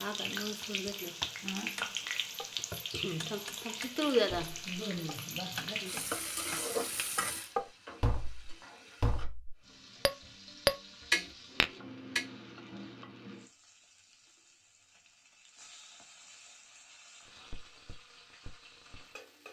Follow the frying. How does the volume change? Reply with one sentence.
The loudness of the frying goes down.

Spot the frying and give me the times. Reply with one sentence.
You can hear the frying from 0.0 to 19.4 s.